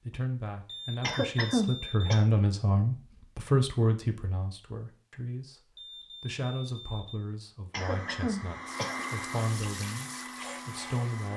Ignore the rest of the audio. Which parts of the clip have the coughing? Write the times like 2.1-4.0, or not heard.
1.0-2.2, 7.7-9.1.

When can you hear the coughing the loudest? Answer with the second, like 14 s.
2 s.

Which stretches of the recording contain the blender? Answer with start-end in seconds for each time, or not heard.
7.8-11.3.